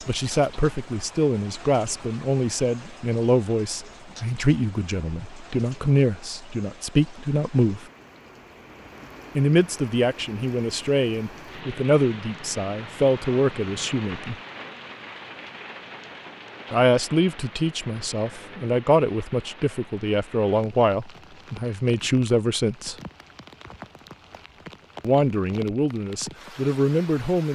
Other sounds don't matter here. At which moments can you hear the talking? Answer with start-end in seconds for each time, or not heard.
0.1-7.8, 9.3-14.3, 16.7-22.9, 25.0-27.5.